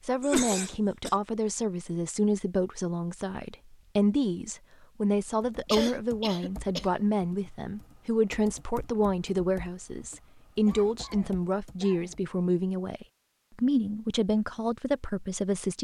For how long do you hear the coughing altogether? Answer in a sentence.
The coughing can be heard for 4 seconds in total.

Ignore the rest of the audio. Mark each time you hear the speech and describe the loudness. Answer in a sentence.
The speech can be heard from 0.0 to 15.7 s, at a steady volume.